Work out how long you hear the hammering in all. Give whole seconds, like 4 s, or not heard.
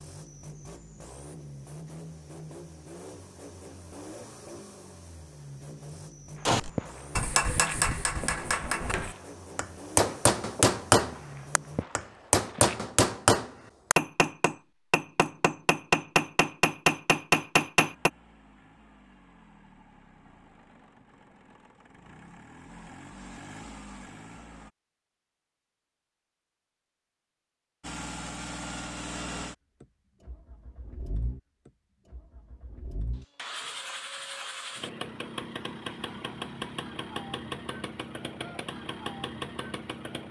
12 s.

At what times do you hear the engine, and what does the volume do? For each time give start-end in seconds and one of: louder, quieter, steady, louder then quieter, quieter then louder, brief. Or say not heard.
0.0-11.8 steady
17.8-24.7 louder
27.8-40.2 quieter then louder.